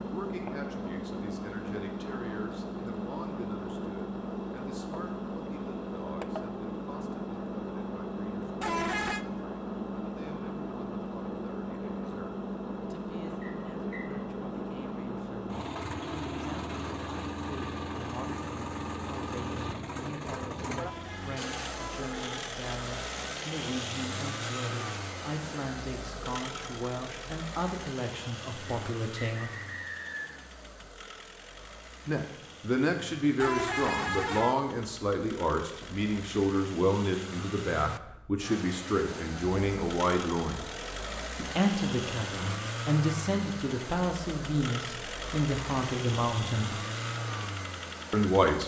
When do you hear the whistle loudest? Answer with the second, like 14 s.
30 s.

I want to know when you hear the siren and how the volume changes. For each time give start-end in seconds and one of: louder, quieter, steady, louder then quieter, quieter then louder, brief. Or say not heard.
not heard.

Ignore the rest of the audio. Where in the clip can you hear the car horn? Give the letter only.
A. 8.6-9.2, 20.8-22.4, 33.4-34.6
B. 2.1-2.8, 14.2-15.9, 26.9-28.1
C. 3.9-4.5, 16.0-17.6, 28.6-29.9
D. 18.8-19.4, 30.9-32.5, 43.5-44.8
A.